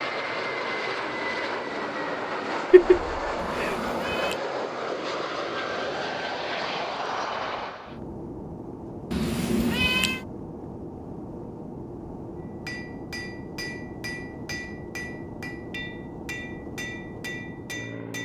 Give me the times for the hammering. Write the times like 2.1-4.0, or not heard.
12.7-18.1.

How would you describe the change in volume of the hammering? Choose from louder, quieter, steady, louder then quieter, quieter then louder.
steady.